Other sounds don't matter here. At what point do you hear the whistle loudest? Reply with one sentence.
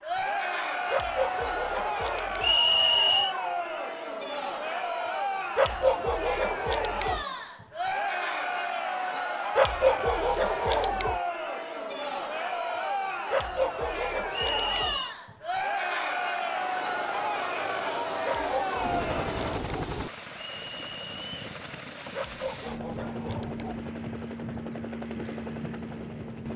The volume of the whistle peaks at 3 seconds.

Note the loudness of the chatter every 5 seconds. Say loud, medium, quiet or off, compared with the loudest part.
loud, loud, loud, loud, off, off.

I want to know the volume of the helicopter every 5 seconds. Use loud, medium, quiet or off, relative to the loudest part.
off, off, off, loud, loud, loud.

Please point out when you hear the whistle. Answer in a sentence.
You can hear the whistle from 2.4 to 3.4 s, from 14.3 to 15.2 s and from 20.5 to 21.4 s.